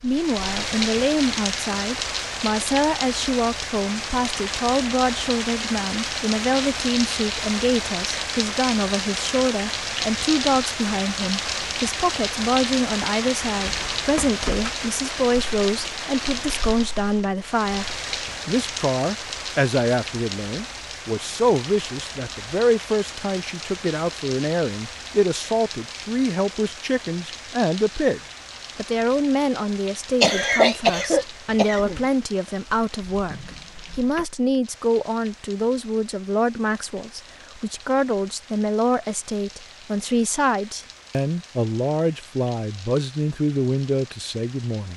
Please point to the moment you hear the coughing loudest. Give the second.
31 s.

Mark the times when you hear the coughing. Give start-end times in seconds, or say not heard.
30.2-32.0.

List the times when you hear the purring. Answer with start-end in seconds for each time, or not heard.
not heard.